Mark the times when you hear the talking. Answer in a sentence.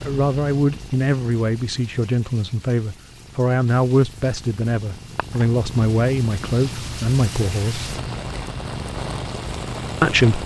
You can hear the talking from 0.0 to 7.9 s and from 10.0 to 10.4 s.